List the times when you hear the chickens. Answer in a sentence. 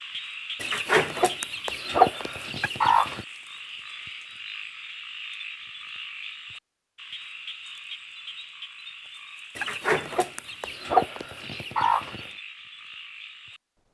You can hear the chickens from 0.6 to 3.2 s and from 9.6 to 12.3 s.